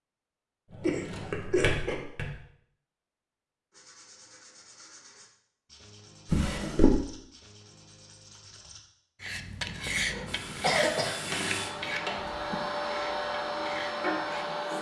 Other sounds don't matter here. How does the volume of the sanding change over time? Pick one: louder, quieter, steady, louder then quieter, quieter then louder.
louder then quieter.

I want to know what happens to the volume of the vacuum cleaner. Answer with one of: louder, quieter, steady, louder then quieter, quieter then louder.
louder.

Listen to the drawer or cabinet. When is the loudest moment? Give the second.
7 s.